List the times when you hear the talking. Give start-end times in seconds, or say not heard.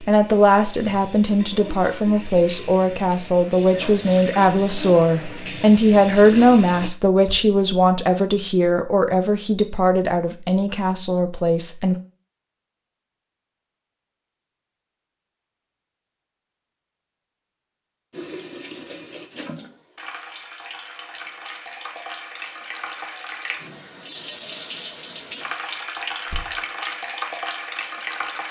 0.0-11.9.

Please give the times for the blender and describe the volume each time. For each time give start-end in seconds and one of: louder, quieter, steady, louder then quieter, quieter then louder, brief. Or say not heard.
not heard.